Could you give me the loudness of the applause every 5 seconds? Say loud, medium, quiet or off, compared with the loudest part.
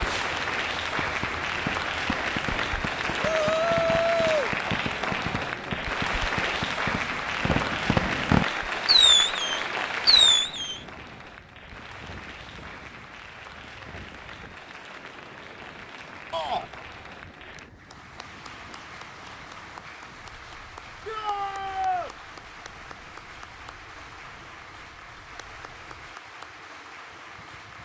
loud, loud, medium, quiet, quiet, quiet.